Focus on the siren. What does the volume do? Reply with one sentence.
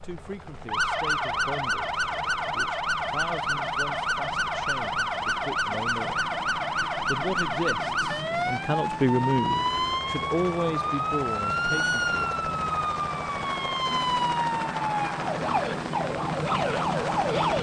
The loudness of the siren stays about the same.